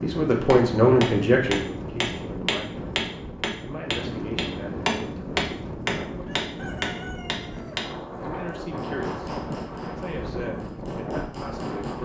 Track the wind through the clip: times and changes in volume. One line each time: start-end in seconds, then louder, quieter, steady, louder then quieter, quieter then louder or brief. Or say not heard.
0.0-12.0 steady.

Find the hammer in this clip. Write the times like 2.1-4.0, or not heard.
0.5-7.8, 8.4-12.0.